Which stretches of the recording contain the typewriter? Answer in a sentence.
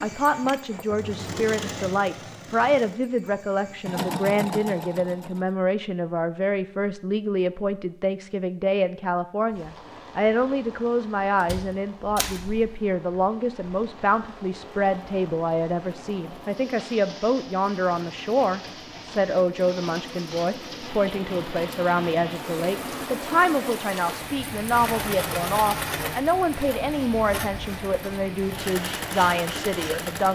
You can hear the typewriter from 11.4 to 12.5 s.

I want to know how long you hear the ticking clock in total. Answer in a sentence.
You can't hear the ticking clock here.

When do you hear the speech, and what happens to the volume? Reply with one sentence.
The speech can be heard from 0.0 to 30.3 s, at a steady volume.